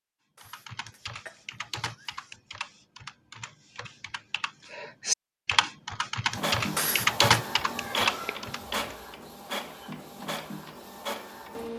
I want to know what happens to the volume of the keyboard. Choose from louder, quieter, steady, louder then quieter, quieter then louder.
louder.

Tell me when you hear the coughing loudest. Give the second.
7 s.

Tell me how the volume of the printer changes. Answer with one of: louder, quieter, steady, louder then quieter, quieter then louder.
quieter.